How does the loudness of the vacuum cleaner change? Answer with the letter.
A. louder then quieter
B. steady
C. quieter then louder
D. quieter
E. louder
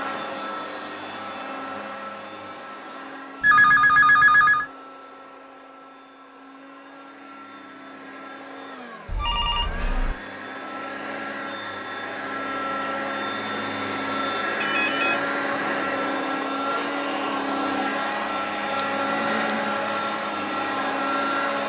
C.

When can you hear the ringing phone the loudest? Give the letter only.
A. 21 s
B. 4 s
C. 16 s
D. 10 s
B.